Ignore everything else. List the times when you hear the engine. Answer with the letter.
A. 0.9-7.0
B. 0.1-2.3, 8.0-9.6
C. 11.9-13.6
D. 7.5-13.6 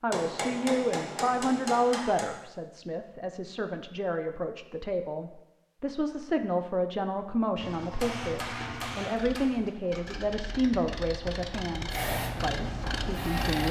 D.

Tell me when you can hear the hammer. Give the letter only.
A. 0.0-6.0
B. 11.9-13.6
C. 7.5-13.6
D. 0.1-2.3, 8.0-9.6
D.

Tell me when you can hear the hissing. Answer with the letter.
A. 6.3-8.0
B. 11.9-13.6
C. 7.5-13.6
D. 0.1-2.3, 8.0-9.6
B.